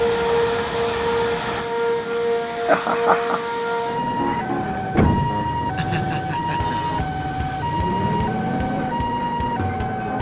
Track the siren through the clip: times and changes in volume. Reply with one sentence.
You can hear the siren from 0.0 to 10.1 s, at a steady volume.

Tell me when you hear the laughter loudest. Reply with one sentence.
The loudest moment of the laughter is at 3 seconds.